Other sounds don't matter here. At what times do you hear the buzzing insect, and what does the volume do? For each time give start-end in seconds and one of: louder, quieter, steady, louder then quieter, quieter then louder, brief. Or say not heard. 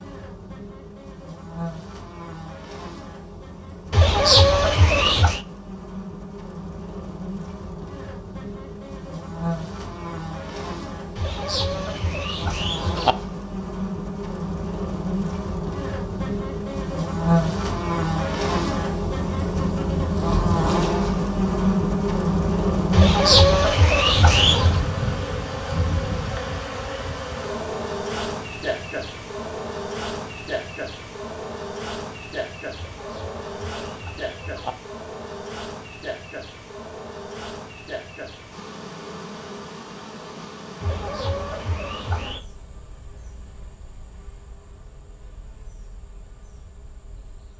0.0-47.5 louder then quieter.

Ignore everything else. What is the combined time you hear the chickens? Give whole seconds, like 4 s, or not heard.
9 s.